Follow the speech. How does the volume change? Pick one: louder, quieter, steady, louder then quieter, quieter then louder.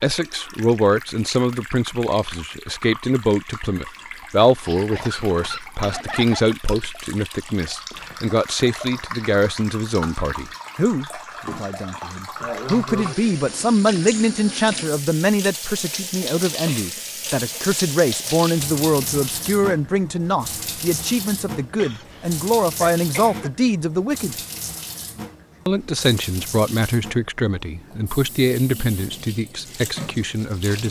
steady.